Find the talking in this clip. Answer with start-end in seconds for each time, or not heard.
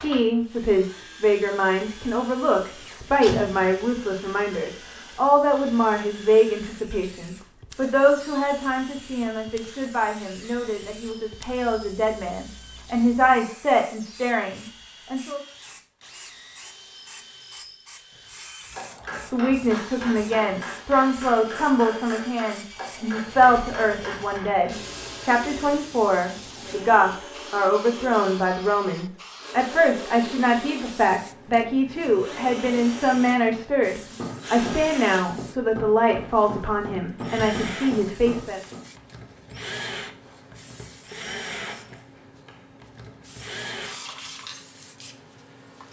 0.0-15.4, 19.3-38.6.